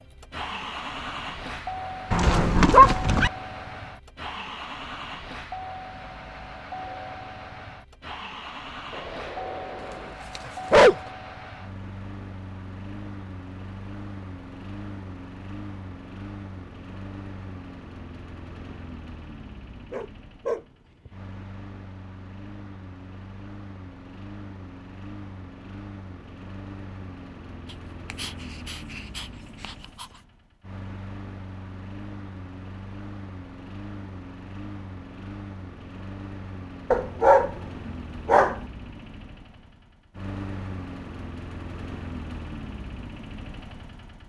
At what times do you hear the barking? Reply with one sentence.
You can hear the barking from 2.1 to 3.3 s, from 8.9 to 11.1 s, from 19.9 to 21.1 s, from 27.7 to 30.1 s and from 36.9 to 38.6 s.